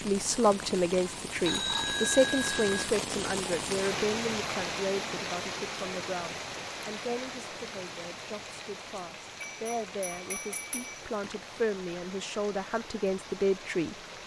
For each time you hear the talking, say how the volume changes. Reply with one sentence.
You can hear the talking from 0.0 to 13.9 s, getting quieter then louder.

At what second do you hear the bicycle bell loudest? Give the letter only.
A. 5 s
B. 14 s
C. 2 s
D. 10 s
C.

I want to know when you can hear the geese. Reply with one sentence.
The geese can't be heard in this clip.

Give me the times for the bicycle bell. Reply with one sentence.
You can hear the bicycle bell from 1.4 to 2.9 s and from 9.4 to 11.3 s.